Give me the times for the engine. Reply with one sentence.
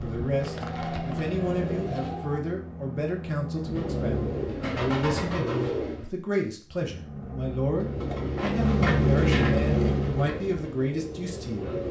The engine can be heard from 0.0 to 4.5 s and from 6.7 to 10.3 s.